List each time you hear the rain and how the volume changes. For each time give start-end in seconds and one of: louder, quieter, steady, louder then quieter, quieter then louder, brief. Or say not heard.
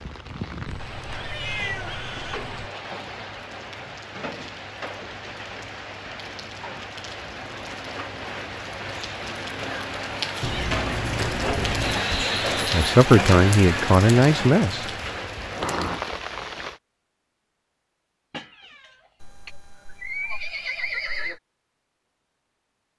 0.0-16.8 louder.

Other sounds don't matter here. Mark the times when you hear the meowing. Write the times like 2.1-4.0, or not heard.
0.7-2.7, 10.4-12.1, 18.3-19.5.